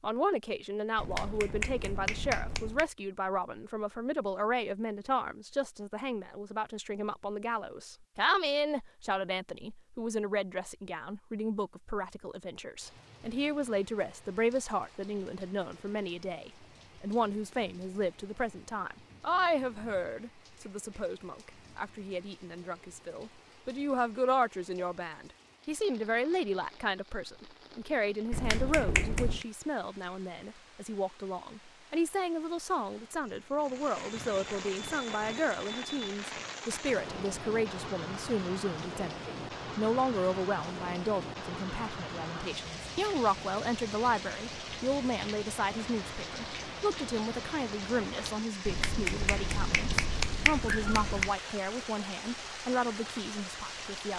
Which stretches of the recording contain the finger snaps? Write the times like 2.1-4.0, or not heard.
0.9-2.9, 28.3-29.4, 48.6-51.4.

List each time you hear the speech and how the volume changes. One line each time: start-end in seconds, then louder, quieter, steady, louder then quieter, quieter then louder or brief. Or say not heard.
0.0-54.1 steady.